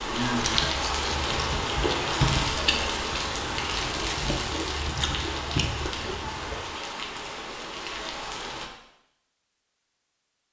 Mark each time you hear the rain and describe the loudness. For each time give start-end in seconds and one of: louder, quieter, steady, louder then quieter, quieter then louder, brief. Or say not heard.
0.0-8.7 quieter.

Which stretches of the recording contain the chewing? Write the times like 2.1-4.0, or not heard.
0.3-6.6.